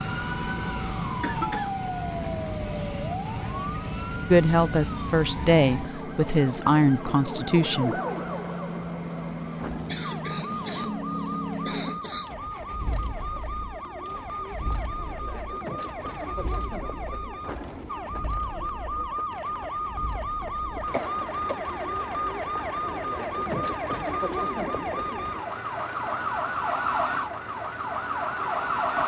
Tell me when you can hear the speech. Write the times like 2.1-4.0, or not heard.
4.3-8.0.